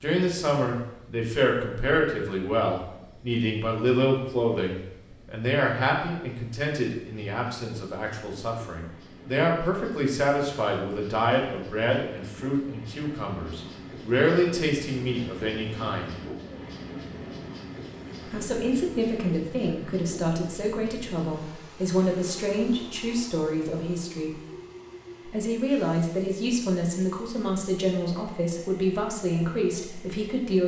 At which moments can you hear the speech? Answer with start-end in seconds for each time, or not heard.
0.0-16.1, 18.3-24.4, 25.2-30.6.